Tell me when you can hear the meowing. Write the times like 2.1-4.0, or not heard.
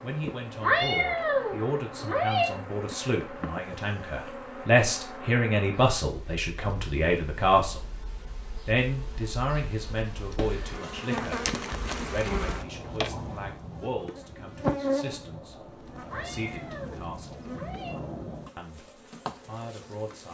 0.6-2.5, 16.1-17.9.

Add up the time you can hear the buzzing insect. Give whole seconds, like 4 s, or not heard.
20 s.